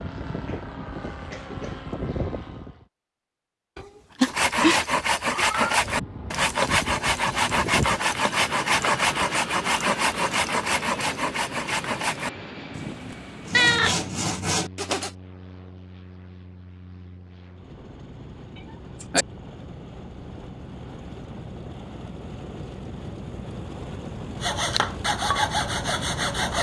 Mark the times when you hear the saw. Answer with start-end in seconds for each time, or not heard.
4.2-15.1, 24.4-26.5.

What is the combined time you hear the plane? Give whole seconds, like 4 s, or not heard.
24 s.